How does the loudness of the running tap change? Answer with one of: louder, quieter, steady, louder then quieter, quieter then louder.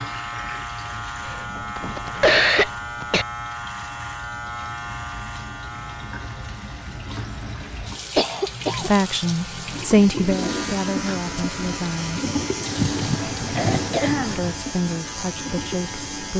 louder.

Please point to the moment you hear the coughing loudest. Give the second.
2 s.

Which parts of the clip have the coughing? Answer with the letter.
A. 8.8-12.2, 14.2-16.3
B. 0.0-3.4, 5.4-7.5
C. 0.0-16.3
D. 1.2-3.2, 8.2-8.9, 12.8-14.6
D.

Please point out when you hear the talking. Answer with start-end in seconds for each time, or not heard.
8.8-12.2, 14.2-16.3.